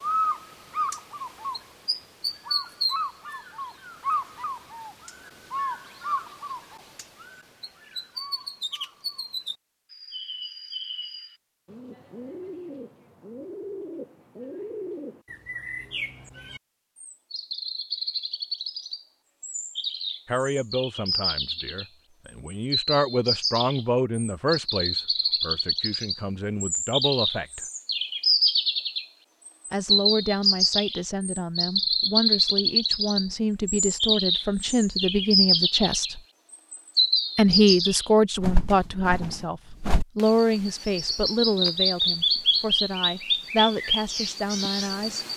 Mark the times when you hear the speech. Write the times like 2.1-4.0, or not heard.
20.2-27.6, 29.7-36.2, 37.4-45.2.